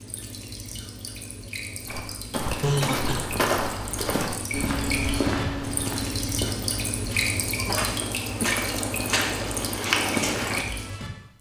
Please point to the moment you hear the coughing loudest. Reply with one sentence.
The volume of the coughing peaks at 3 seconds.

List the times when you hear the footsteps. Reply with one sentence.
You can hear the footsteps from 1.9 to 10.7 s.